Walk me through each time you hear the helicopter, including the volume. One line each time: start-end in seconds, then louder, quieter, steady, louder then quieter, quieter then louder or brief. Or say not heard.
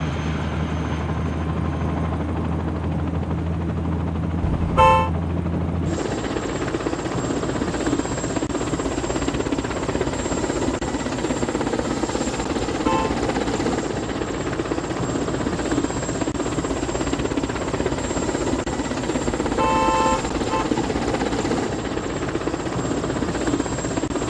0.0-24.2 steady.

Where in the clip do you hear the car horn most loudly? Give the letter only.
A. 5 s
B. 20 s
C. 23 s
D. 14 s
A.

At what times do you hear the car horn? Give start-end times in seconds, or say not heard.
4.5-5.1, 12.7-13.2, 19.4-20.8.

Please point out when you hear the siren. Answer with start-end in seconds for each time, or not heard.
not heard.